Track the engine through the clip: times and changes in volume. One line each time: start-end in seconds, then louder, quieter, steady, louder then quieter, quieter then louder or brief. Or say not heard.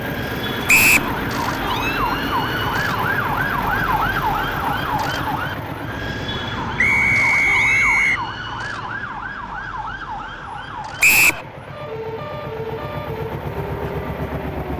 0.0-14.7 quieter then louder.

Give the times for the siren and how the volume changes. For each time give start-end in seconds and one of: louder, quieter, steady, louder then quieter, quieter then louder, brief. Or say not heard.
0.0-14.7 quieter.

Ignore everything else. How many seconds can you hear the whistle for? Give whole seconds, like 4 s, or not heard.
2 s.